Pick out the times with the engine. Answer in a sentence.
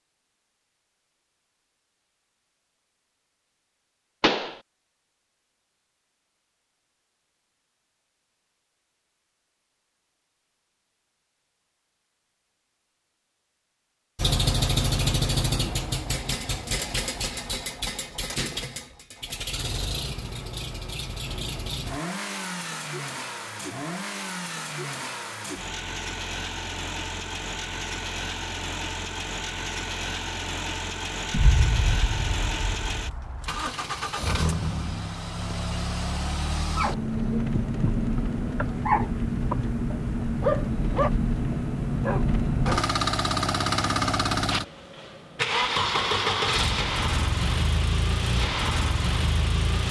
You can hear the engine from 14.2 to 49.8 s.